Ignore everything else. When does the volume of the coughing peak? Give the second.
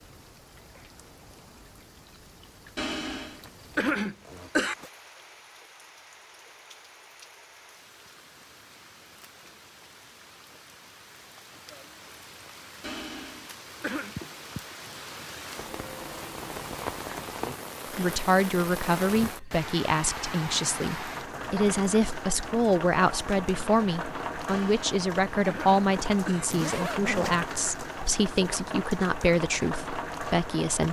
4 s.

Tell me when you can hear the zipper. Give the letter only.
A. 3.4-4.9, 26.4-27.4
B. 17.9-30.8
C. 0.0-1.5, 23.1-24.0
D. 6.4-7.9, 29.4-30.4
A.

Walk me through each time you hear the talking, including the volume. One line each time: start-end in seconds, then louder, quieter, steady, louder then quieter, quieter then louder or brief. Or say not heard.
17.9-30.8 steady.